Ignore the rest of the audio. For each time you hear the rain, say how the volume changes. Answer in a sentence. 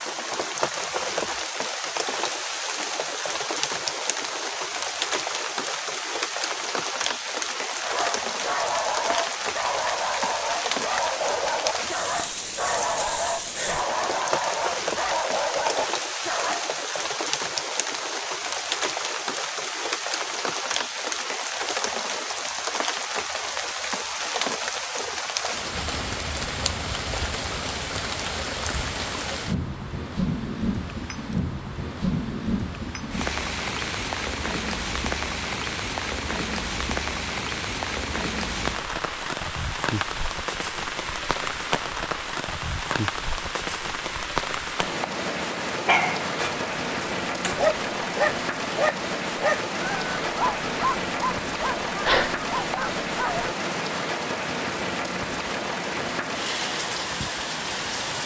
The rain can be heard from 0.0 to 58.2 s, at a steady volume.